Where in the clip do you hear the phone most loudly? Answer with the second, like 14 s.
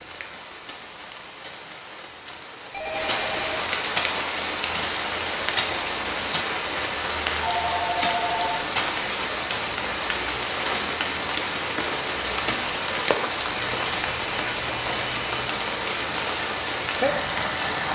8 s.